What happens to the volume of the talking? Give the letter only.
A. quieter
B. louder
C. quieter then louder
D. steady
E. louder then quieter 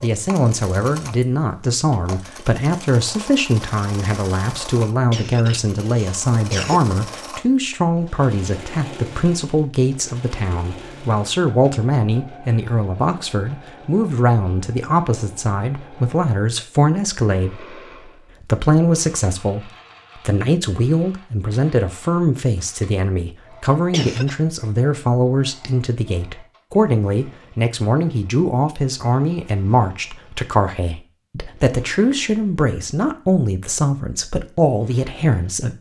D.